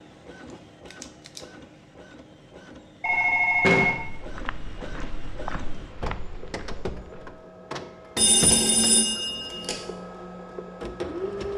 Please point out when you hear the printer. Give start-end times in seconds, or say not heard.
0.0-11.5.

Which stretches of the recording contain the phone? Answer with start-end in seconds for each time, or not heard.
3.0-4.0, 8.2-9.8.